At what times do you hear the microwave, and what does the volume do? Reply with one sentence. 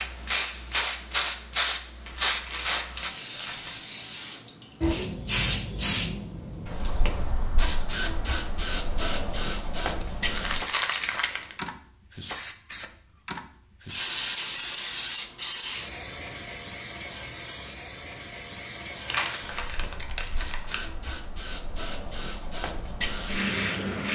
You can't hear the microwave here.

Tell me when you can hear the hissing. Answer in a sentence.
The hissing can be heard from 0.0 to 24.1 s.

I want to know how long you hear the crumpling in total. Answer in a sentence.
The crumpling can be heard for 5 seconds in total.